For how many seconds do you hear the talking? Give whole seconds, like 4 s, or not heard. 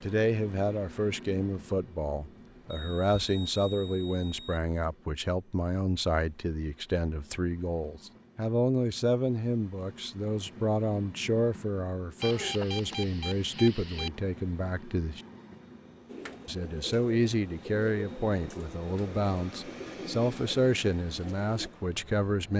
21 s.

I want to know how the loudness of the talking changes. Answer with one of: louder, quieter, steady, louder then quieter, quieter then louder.
steady.